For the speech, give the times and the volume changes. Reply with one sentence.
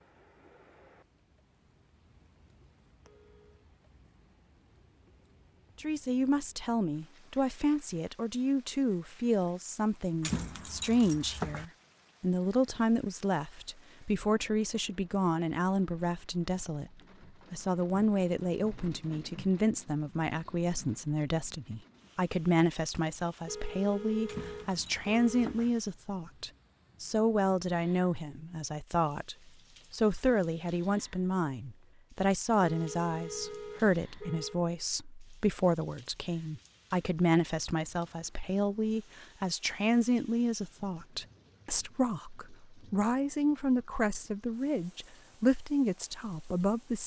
You can hear the speech from 5.8 to 47.0 s, at a steady volume.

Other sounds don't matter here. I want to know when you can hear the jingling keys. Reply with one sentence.
You can hear the jingling keys from 10.2 to 11.7 s and from 24.2 to 25.7 s.